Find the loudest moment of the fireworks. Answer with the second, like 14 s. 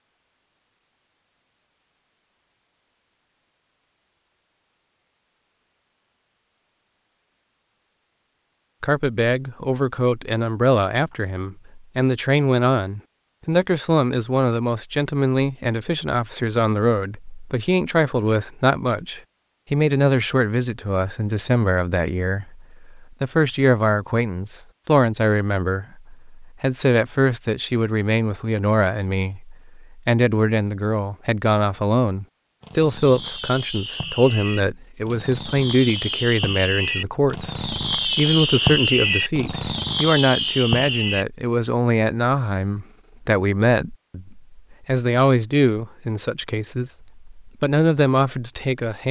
39 s.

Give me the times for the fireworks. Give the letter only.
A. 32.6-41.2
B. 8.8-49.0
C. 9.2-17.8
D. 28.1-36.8
A.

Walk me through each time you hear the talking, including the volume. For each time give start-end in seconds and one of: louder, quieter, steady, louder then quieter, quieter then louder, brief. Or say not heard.
8.8-49.0 steady.